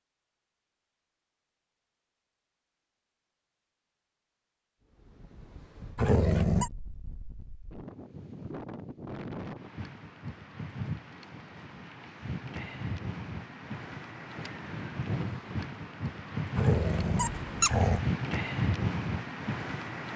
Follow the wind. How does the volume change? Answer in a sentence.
The loudness of the wind goes up.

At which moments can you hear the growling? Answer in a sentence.
The growling can be heard from 6.0 to 6.7 s and from 16.6 to 18.1 s.